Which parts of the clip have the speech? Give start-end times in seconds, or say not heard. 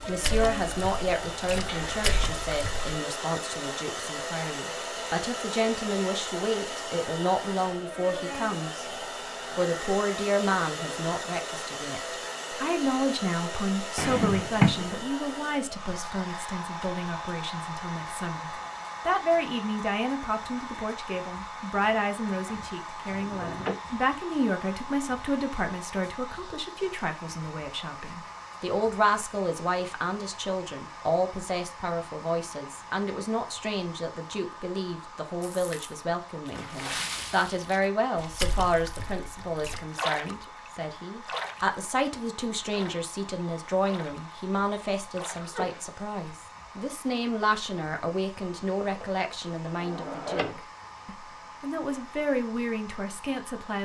0.1-8.8, 9.6-53.7.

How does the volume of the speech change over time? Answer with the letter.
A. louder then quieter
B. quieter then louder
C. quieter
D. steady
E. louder
D.